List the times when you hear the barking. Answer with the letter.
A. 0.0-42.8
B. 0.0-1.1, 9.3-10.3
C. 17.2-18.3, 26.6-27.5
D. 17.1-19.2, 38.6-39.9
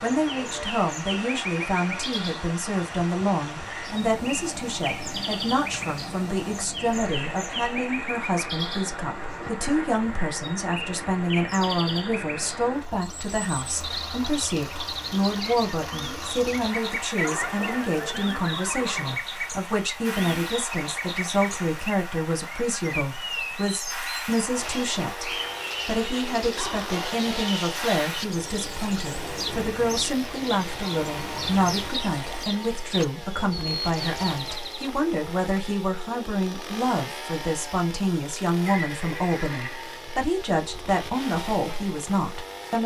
C.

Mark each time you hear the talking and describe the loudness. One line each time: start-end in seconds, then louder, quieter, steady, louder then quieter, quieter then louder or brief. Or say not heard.
0.0-42.8 steady.